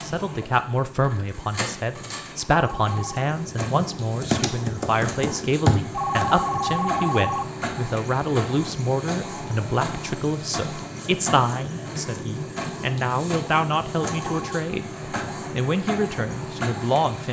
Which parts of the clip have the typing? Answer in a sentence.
The typing can be heard from 3.6 to 6.3 s.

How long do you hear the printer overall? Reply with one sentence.
The printer can be heard for 17 seconds in total.